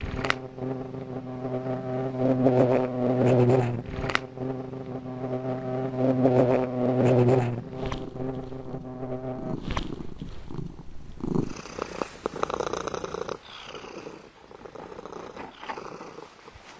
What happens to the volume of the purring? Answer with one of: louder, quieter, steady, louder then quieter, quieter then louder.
louder then quieter.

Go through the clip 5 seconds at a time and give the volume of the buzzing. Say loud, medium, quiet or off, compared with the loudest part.
loud, loud, off, off.